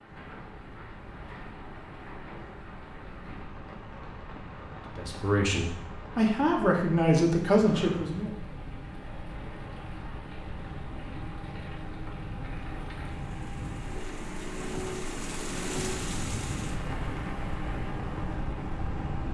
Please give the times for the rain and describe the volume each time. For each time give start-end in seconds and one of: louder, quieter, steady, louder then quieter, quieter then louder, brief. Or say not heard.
0.0-19.3 louder.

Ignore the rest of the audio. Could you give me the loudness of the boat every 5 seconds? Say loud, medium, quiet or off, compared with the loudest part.
quiet, medium, loud, loud.